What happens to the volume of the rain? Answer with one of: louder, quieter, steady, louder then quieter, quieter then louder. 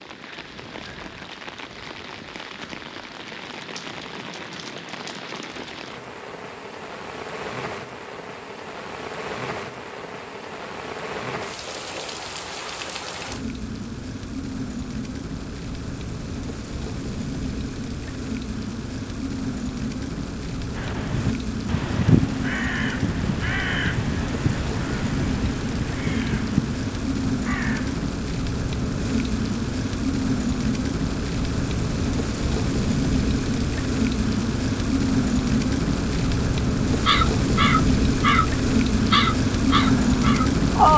louder.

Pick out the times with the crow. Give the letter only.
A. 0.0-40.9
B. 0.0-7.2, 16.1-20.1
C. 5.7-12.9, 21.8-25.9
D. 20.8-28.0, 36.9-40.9
D.